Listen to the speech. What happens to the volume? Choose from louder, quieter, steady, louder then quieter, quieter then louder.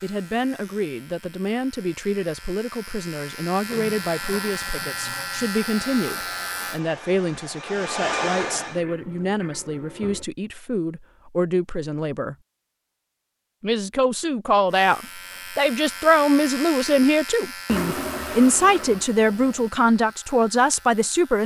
louder.